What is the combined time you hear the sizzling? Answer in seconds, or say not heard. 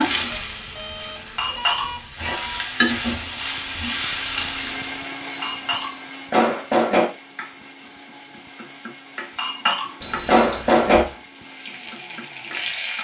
7 s.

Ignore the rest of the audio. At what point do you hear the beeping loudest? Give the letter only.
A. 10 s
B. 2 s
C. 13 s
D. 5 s
A.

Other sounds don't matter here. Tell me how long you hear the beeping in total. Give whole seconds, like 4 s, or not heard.
4 s.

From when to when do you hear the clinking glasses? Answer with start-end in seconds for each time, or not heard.
1.4-2.4, 5.4-7.0, 9.3-11.1.